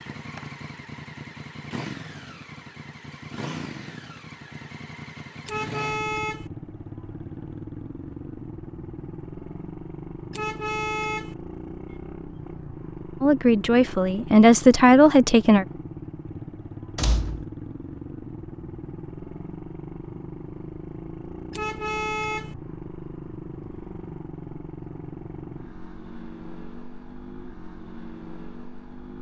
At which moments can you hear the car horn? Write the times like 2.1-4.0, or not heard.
5.5-6.5, 10.3-11.3, 21.5-22.6.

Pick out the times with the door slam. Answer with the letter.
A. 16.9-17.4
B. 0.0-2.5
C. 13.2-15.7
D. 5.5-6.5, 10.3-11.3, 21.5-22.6
A.